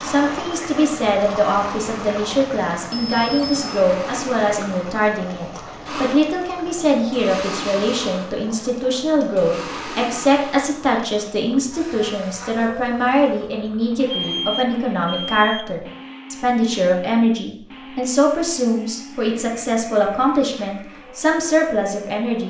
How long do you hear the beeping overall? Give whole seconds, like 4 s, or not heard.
3 s.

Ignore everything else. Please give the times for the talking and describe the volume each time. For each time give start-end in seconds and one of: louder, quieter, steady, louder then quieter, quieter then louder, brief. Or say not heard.
0.0-22.4 steady.